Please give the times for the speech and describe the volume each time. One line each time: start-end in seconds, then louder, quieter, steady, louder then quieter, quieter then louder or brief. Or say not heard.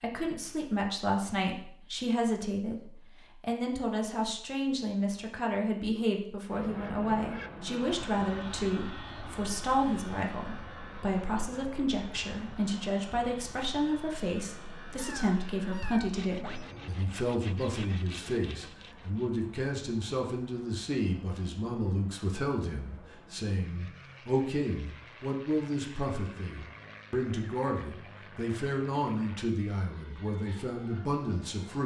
0.0-31.8 steady.